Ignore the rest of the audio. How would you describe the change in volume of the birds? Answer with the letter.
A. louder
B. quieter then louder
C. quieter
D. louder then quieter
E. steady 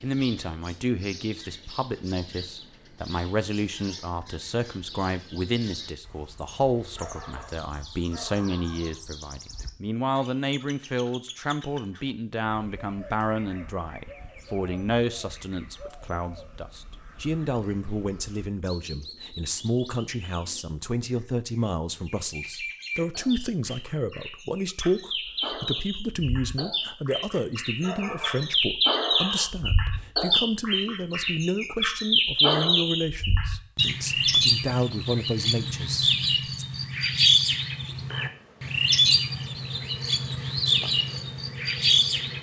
A.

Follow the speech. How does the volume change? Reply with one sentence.
The loudness of the speech stays about the same.